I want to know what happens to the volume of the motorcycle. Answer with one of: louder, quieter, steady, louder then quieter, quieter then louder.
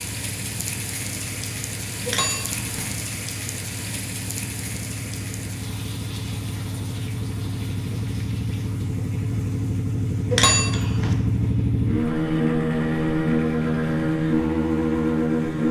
louder.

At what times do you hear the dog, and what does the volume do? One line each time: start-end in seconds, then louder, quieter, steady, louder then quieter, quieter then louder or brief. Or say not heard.
not heard.